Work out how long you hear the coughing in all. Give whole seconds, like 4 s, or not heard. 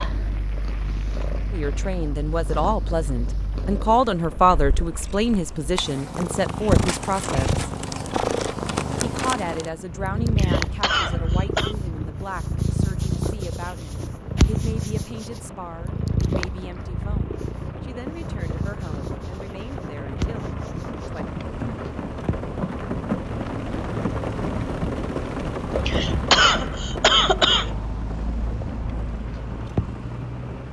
3 s.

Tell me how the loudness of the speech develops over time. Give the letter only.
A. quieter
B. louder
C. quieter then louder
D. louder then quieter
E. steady
A.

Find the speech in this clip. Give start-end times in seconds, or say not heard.
1.5-7.6, 9.2-21.3.